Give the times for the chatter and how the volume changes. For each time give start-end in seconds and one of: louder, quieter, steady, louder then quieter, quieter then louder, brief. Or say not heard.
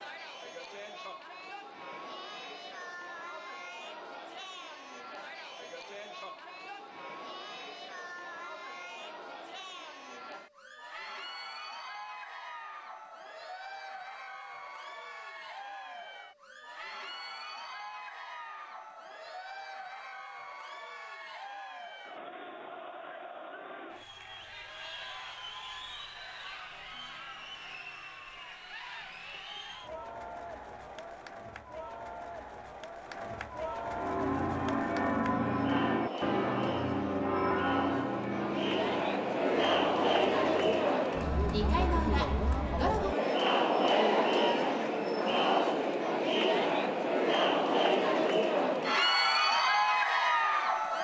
0.0-51.0 louder.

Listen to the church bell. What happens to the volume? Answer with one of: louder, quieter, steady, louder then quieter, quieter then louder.
quieter.